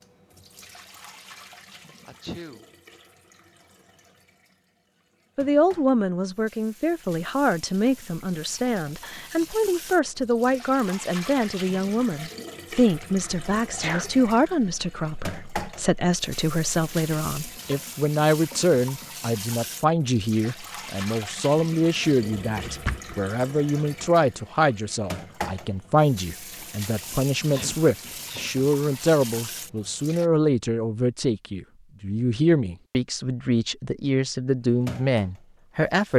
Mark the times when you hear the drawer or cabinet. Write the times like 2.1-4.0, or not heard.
22.2-23.2.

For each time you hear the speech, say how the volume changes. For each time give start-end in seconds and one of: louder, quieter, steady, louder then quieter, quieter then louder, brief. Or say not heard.
5.3-36.1 steady.